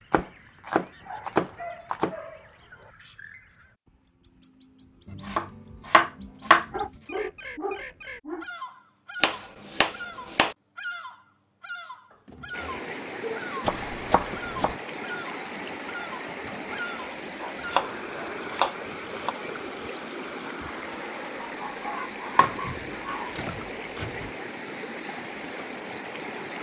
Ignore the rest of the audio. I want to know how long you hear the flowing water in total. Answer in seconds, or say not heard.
14 s.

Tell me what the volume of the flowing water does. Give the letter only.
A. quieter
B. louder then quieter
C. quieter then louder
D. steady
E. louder
D.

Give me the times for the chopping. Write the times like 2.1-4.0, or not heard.
0.1-2.1, 5.0-6.8, 9.2-10.6, 13.6-14.8, 17.6-19.4, 22.4-24.3.